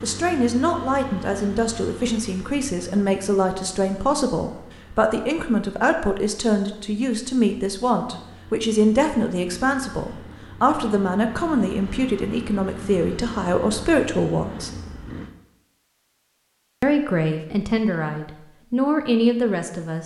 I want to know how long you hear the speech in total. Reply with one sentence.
You can hear the speech for 18 seconds altogether.